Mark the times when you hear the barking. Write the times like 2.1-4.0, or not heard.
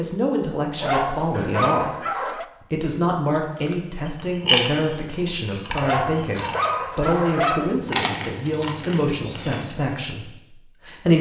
0.8-2.5, 5.8-7.8.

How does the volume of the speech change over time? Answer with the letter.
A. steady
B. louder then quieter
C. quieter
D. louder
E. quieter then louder
A.